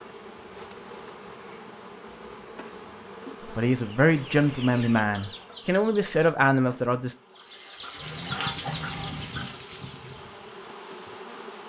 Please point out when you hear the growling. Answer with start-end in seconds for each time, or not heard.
8.0-9.4.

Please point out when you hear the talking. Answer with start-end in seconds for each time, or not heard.
3.5-7.2.